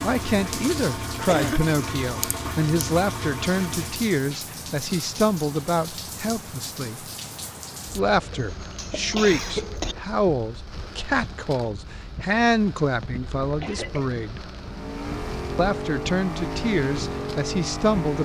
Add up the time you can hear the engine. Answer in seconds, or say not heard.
8 s.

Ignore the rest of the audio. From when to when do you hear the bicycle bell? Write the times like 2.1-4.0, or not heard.
not heard.